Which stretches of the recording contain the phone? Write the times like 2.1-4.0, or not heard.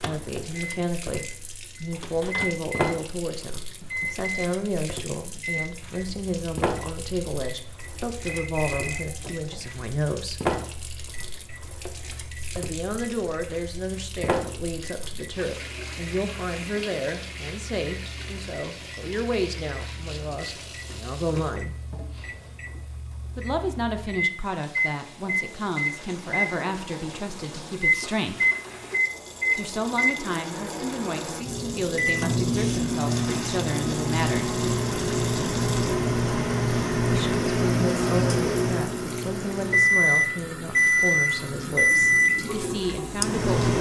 8.2-9.8.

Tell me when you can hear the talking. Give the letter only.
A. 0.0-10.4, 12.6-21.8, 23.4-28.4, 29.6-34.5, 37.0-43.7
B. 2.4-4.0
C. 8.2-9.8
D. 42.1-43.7
A.